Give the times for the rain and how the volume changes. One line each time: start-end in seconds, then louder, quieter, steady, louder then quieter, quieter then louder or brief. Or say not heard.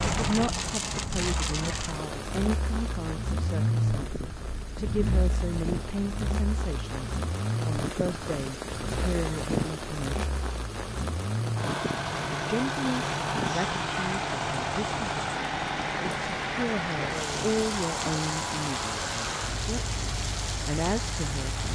0.0-21.7 steady.